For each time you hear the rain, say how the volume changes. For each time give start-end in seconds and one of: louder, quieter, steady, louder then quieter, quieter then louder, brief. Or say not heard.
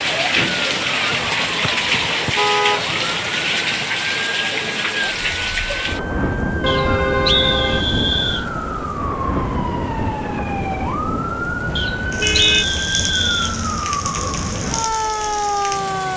0.0-16.1 quieter.